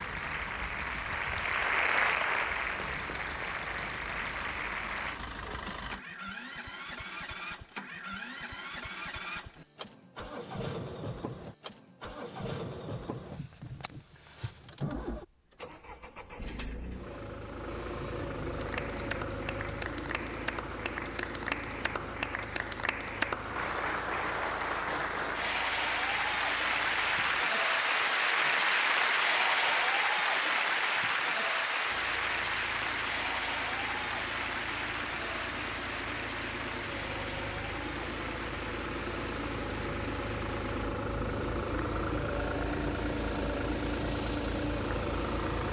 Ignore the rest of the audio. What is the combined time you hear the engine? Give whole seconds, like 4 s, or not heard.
41 s.